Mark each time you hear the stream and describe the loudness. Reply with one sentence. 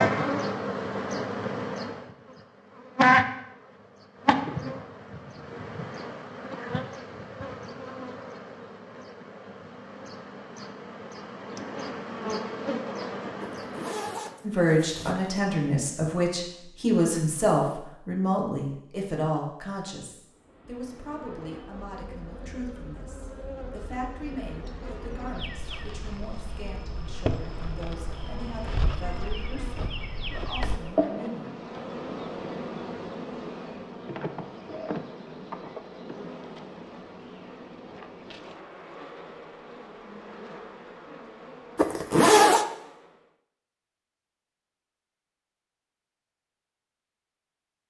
The stream can't be heard in this clip.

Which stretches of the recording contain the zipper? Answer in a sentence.
You can hear the zipper from 13.4 to 15.4 s and from 41.8 to 42.6 s.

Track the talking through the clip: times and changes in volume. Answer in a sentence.
You can hear the talking from 14.4 to 31.5 s, getting quieter.